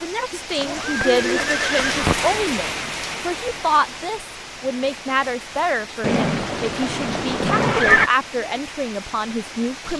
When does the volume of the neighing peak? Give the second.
8 s.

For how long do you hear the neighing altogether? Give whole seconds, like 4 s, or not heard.
4 s.